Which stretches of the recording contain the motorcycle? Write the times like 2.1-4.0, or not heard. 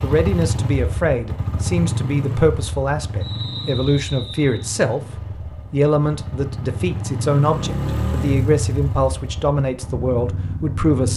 0.0-11.1.